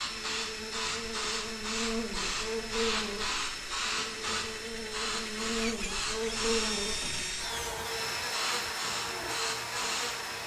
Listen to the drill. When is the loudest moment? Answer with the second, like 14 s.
7 s.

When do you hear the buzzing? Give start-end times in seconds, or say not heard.
0.0-10.4.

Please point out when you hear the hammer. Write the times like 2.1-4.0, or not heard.
not heard.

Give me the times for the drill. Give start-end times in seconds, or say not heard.
0.0-10.4.